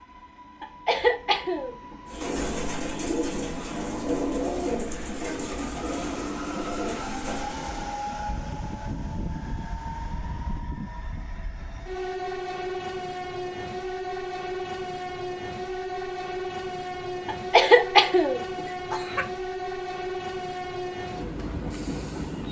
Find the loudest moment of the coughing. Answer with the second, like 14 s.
18 s.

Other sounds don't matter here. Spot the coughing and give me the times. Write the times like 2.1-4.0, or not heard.
0.6-1.8, 17.2-19.2.